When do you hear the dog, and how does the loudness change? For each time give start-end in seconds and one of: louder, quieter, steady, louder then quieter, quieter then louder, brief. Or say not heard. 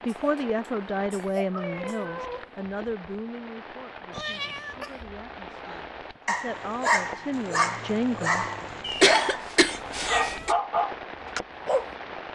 6.2-11.9 steady.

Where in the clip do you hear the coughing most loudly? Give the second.
9 s.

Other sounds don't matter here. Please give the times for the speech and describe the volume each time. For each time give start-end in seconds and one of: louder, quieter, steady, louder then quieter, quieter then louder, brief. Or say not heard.
0.1-8.4 quieter then louder.